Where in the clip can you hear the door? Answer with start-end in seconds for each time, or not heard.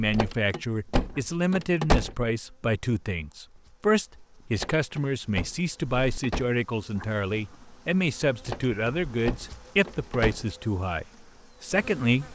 0.1-2.1, 4.5-6.5, 8.4-10.4.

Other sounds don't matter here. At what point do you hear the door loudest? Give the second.
2 s.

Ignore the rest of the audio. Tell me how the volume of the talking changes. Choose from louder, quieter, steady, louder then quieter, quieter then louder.
steady.